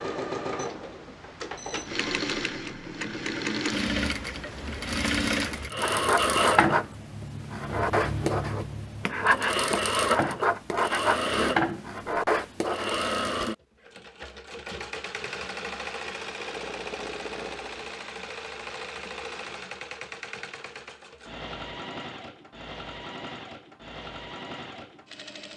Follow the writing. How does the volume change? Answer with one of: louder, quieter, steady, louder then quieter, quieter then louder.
steady.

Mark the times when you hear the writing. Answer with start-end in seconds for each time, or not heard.
5.8-13.0.